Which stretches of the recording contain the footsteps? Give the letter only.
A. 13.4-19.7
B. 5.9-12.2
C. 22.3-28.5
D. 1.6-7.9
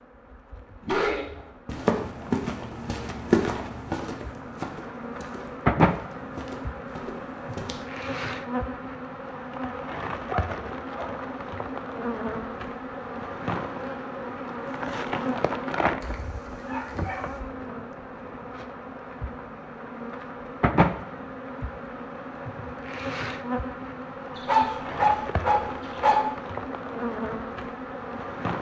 D.